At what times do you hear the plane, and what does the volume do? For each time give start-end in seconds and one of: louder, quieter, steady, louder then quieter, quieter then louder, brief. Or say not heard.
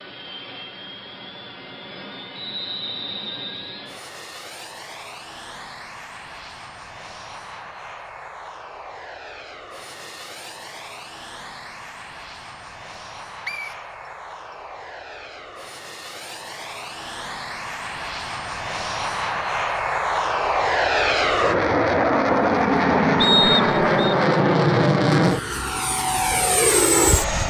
0.0-27.4 louder.